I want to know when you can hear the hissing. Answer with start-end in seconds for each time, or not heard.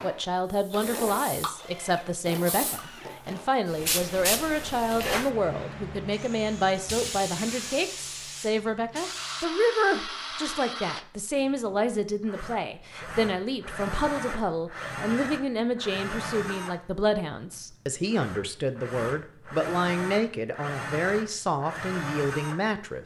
0.5-9.4.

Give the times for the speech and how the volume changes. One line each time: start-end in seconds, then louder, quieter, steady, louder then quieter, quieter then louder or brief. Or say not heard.
0.0-23.0 steady.